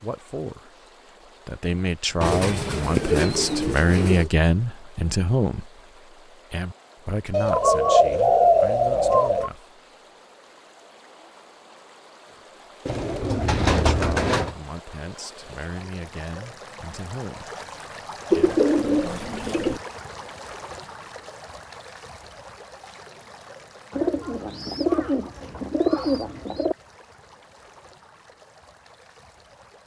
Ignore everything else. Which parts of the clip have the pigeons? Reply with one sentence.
You can hear the pigeons from 2.2 to 4.3 s, from 7.3 to 9.5 s, from 12.8 to 14.6 s, from 18.3 to 19.8 s and from 23.9 to 26.8 s.